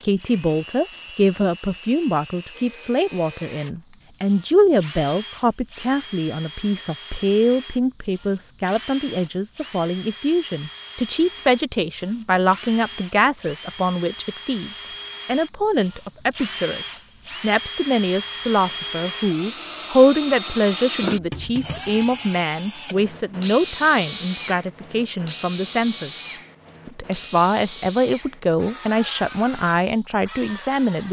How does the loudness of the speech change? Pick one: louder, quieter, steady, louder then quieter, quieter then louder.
steady.